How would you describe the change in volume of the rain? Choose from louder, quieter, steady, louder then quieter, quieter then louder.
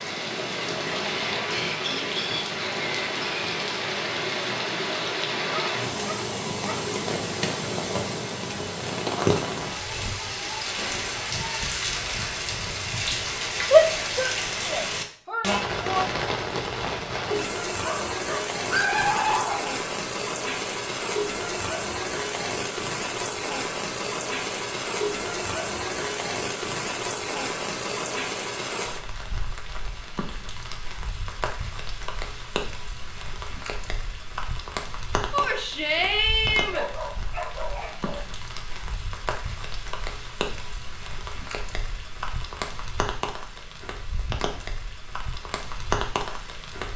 quieter.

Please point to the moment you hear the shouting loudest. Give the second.
14 s.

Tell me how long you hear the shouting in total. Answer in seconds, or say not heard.
4 s.